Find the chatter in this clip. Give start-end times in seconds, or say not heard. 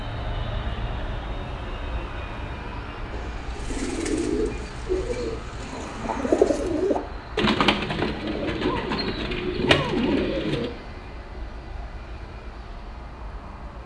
not heard.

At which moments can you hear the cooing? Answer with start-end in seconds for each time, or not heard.
3.1-10.7.